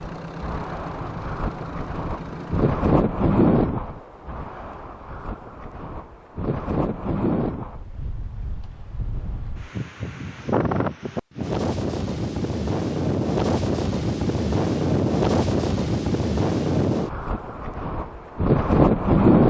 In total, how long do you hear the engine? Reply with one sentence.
You can hear the engine for 3 seconds altogether.